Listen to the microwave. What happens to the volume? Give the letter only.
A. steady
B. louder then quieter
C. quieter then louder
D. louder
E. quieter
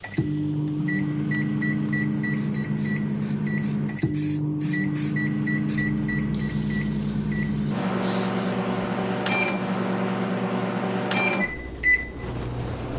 A.